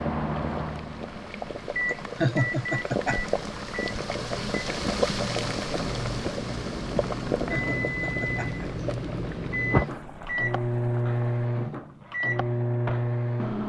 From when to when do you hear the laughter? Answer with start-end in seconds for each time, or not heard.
2.1-3.2, 7.5-8.8.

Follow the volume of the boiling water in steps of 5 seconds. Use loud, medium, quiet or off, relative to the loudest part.
loud, loud, medium.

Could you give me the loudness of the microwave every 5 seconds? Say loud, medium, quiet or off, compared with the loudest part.
medium, loud, loud.